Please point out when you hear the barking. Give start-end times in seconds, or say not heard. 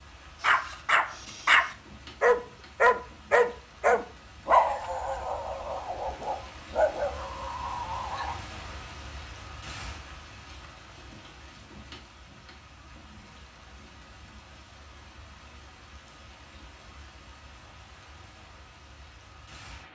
0.4-8.3.